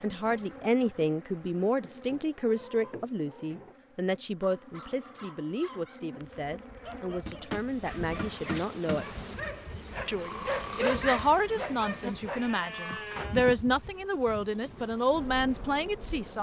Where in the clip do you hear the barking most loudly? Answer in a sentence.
The loudest moment of the barking is at 11 seconds.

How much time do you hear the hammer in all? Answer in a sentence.
The hammer can be heard for 2 seconds in total.